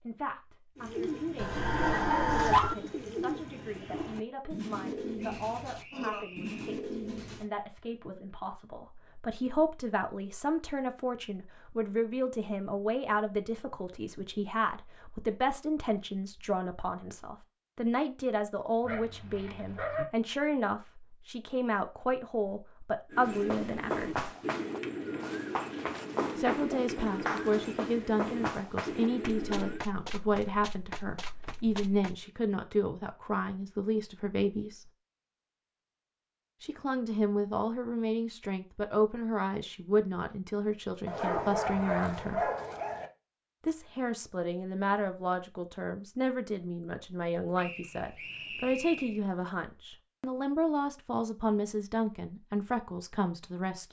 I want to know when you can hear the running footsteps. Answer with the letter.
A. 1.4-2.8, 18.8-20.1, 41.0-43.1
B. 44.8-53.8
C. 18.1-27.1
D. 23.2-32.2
D.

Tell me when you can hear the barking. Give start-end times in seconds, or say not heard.
1.4-2.8, 18.8-20.1, 41.0-43.1.